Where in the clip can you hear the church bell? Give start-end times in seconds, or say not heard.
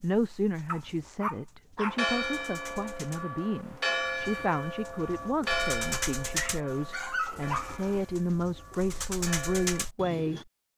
1.9-9.8.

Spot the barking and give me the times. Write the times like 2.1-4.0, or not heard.
0.7-2.0, 6.3-8.0.